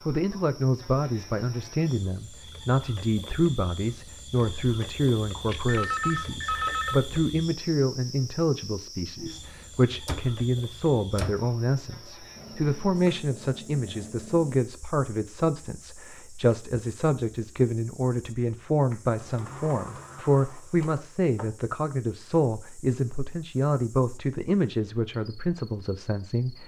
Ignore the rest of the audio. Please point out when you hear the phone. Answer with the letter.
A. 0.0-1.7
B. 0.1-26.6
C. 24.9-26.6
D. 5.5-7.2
D.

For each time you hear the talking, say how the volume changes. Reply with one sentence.
The talking can be heard from 0.1 to 26.6 s, at a steady volume.